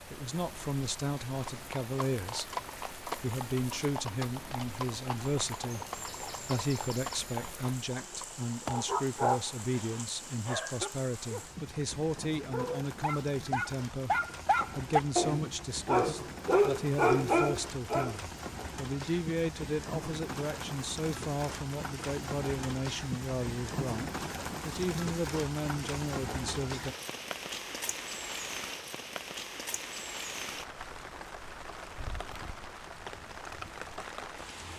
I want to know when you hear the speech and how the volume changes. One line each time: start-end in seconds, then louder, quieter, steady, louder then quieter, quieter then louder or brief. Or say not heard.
0.1-2.5 brief
3.2-14.2 steady
14.8-26.9 steady.